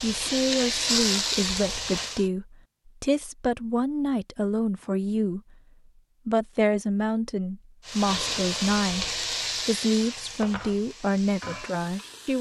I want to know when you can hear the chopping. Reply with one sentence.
You can't hear the chopping here.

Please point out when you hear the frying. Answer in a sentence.
You can hear the frying from 0.0 to 2.2 s and from 7.8 to 12.3 s.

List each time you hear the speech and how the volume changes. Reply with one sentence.
The speech can be heard from 0.0 to 5.5 s, at a steady volume; and from 6.2 to 12.3 s, at a steady volume.